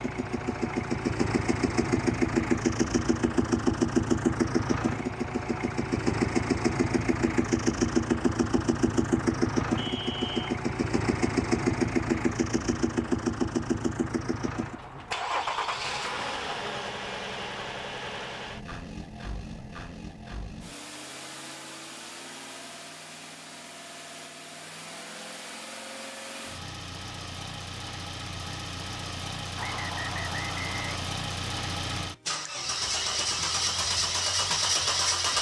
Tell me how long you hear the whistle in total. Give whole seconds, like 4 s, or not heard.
2 s.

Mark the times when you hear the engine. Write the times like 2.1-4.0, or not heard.
0.0-35.3.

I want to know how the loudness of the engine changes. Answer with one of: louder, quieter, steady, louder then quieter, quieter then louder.
quieter then louder.